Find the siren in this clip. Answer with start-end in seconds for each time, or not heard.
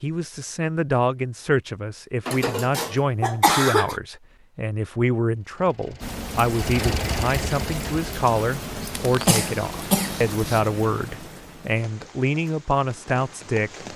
not heard.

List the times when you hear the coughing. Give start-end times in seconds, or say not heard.
2.2-4.0, 8.9-10.6.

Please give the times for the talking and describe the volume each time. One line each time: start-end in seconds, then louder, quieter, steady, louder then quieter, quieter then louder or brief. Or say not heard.
0.0-13.8 steady.